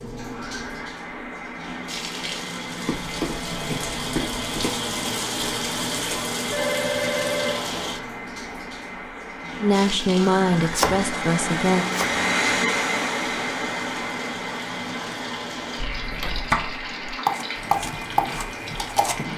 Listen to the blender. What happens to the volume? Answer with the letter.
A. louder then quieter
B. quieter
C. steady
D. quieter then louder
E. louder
A.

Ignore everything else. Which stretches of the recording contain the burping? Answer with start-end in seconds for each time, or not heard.
not heard.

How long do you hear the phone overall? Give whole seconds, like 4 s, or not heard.
4 s.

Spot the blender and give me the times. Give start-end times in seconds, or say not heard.
0.0-19.3.